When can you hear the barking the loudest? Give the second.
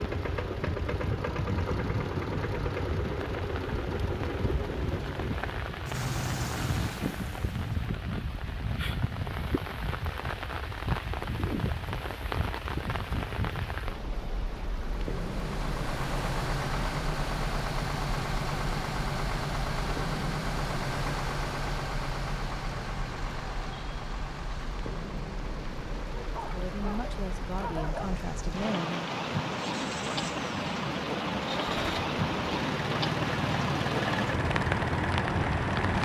28 s.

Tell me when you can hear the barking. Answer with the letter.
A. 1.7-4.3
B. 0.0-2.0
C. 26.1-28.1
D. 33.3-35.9
C.